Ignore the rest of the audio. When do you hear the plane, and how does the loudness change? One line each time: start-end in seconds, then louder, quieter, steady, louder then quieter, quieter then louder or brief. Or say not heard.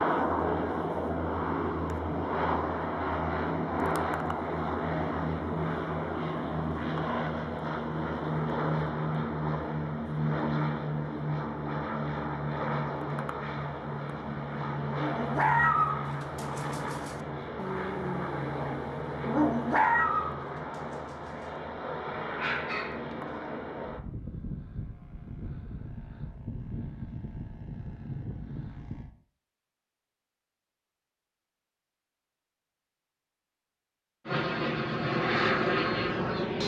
0.0-29.1 quieter
34.2-36.6 brief.